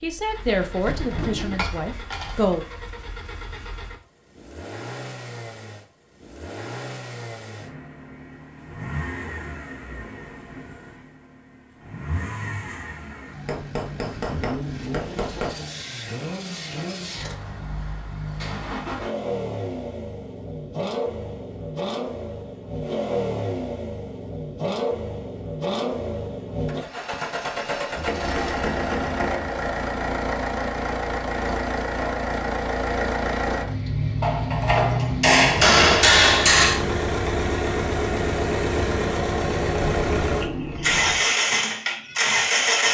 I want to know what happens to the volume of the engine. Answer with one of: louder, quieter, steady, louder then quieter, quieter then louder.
louder.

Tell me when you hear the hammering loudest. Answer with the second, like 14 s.
36 s.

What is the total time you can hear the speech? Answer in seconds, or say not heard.
3 s.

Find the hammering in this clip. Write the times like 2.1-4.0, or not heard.
1.4-2.5, 13.4-15.6, 27.9-29.6, 34.2-36.9.